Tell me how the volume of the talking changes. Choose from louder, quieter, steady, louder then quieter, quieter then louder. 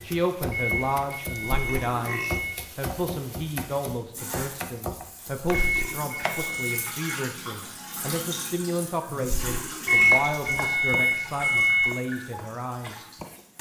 steady.